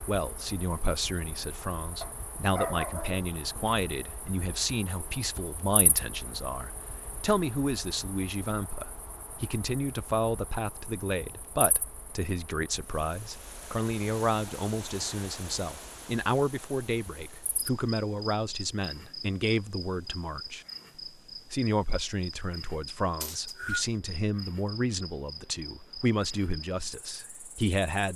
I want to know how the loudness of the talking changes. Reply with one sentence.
The volume of the talking stays about the same.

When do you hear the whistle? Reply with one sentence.
You can hear the whistle from 23.2 to 23.9 s.